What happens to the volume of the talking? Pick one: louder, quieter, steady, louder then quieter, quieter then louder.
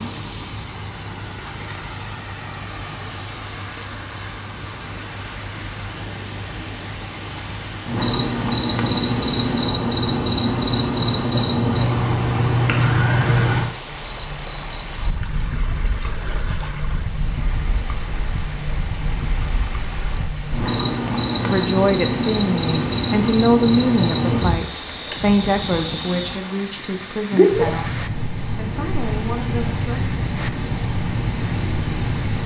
quieter.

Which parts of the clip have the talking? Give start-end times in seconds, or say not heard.
21.4-30.1.